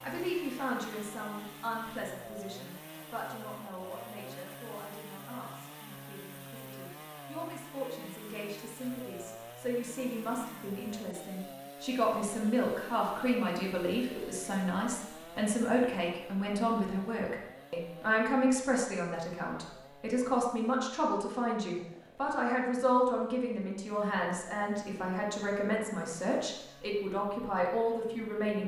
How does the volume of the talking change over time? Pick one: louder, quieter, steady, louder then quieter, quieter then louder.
louder.